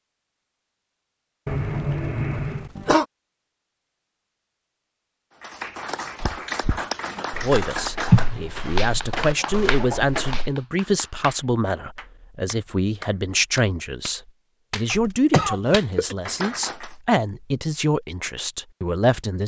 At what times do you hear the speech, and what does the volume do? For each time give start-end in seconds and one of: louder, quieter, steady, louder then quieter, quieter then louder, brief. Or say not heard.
7.4-19.4 steady.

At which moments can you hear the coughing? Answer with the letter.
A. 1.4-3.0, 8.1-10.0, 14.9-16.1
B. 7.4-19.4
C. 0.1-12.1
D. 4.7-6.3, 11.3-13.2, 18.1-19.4
A.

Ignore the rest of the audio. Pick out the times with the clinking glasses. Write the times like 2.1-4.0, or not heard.
not heard.